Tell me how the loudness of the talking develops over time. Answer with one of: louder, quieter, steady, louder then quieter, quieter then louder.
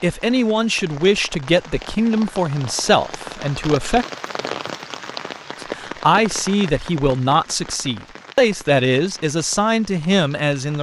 steady.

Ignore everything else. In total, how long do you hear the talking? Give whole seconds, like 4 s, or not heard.
9 s.